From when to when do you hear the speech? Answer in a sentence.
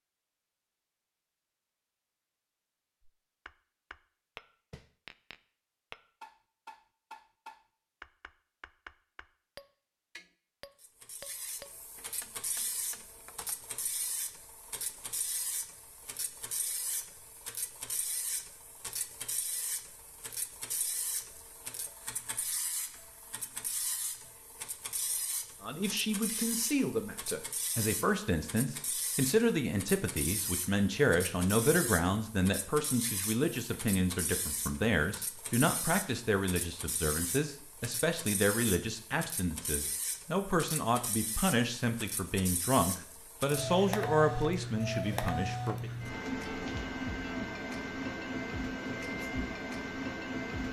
You can hear the speech from 25.6 to 45.9 s.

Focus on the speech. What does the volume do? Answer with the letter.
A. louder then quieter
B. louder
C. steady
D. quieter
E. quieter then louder
C.